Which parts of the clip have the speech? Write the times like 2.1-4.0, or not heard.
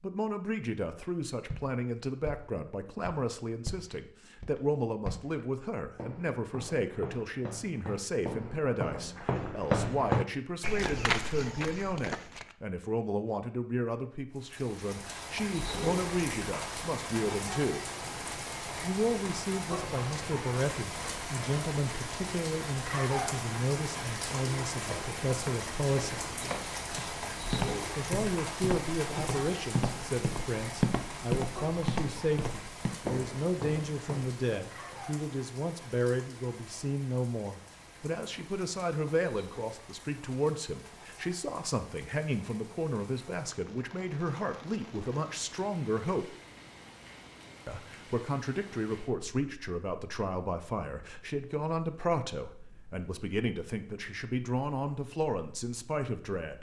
0.0-17.9, 18.8-26.2, 27.9-46.4, 47.6-56.5.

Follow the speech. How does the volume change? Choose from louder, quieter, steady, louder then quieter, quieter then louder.
steady.